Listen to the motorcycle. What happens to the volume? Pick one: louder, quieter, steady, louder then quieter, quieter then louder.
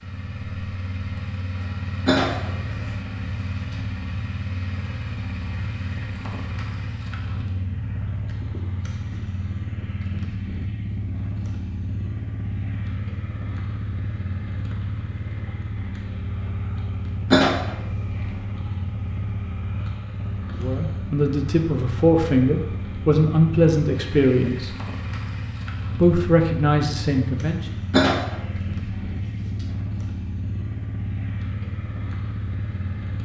steady.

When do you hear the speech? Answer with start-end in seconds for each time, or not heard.
20.6-24.7, 25.9-27.8.